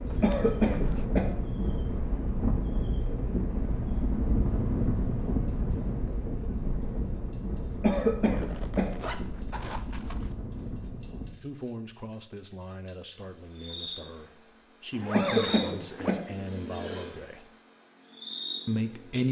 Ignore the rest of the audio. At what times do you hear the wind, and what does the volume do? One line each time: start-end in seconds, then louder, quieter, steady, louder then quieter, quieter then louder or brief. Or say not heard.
0.0-11.3 quieter.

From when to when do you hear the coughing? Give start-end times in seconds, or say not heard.
0.2-1.3, 7.8-8.9, 15.1-16.2.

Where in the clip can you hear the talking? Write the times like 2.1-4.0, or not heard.
11.4-17.4, 18.6-19.2.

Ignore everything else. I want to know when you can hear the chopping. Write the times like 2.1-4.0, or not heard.
not heard.